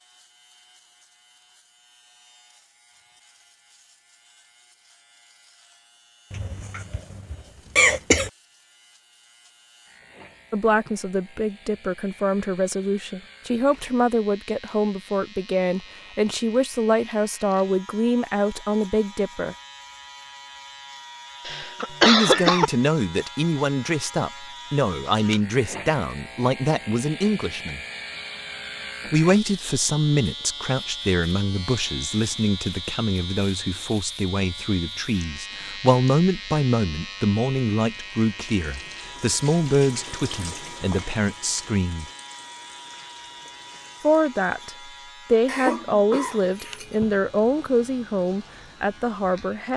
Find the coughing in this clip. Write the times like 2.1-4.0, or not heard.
6.3-8.3, 21.4-22.7, 45.5-47.1.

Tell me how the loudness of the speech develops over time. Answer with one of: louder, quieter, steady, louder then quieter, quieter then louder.
steady.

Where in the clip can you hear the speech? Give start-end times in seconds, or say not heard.
10.5-19.6, 22.1-27.8, 29.1-42.0, 44.0-49.7.